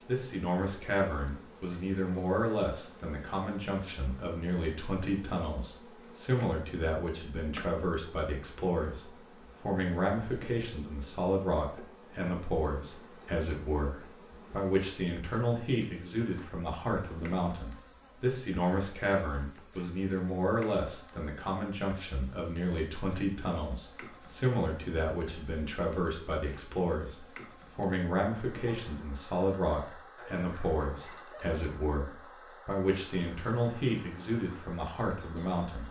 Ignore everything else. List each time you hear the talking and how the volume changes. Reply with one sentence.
The talking can be heard from 0.1 to 35.8 s, at a steady volume.